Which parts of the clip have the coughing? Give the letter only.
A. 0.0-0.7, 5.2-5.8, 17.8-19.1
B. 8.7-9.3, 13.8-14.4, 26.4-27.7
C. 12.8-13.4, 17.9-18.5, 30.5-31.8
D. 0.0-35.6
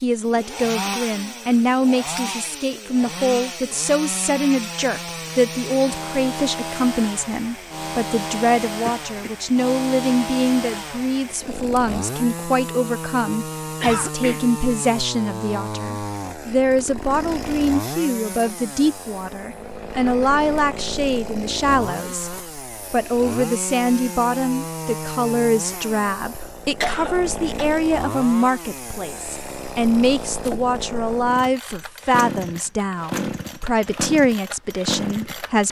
B.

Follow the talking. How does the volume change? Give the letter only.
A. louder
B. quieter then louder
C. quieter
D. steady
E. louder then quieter
D.